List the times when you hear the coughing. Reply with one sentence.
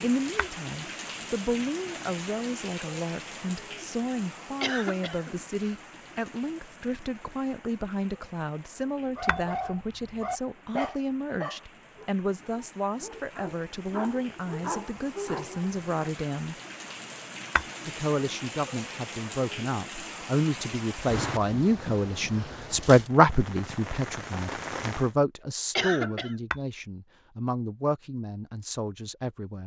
You can hear the coughing from 4.6 to 5.7 s and from 25.8 to 26.4 s.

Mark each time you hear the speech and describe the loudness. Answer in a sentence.
You can hear the speech from 0.0 to 16.6 s, at a steady volume; and from 17.9 to 29.6 s, getting louder then quieter.